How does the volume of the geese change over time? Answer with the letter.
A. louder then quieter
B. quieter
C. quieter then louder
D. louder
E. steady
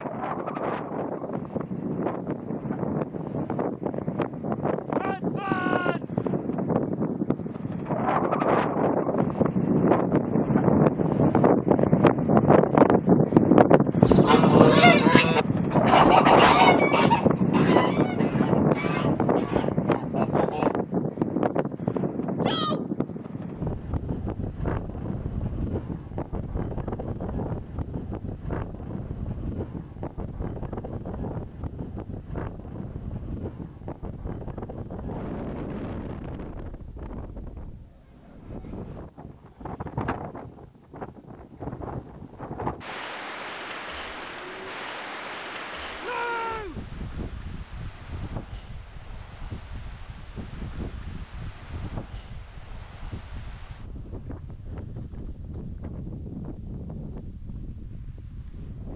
B.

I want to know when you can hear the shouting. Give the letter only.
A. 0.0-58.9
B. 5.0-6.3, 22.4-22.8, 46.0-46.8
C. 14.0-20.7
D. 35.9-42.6
B.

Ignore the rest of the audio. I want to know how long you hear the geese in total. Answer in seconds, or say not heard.
7 s.